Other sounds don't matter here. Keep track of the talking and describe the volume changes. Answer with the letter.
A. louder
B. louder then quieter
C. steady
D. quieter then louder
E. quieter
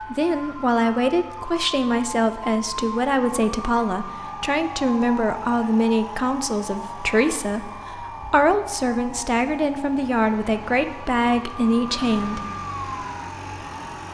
C.